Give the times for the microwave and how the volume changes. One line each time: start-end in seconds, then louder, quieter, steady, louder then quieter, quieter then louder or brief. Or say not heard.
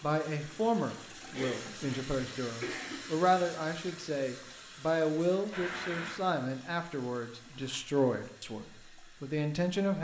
not heard.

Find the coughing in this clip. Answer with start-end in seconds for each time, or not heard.
1.3-3.0, 5.5-6.2.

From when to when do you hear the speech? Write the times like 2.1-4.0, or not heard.
0.0-9.9.